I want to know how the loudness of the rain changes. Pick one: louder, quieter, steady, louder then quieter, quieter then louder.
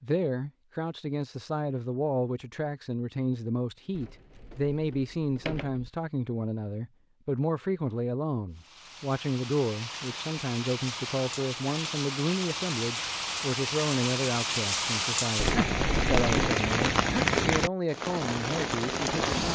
louder.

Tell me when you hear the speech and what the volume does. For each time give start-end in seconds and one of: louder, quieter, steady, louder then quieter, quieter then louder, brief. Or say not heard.
0.0-19.5 steady.